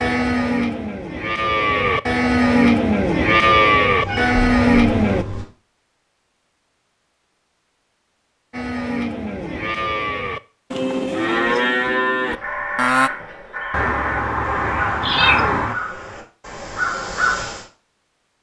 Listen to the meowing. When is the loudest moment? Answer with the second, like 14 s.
15 s.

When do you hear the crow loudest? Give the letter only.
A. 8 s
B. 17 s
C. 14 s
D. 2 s
B.